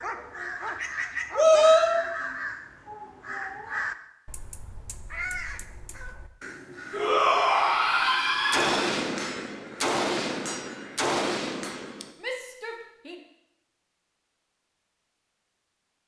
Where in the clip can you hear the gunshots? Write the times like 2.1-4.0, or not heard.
8.5-12.1.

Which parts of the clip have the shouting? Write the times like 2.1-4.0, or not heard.
1.4-1.9, 6.9-8.9, 12.2-13.2.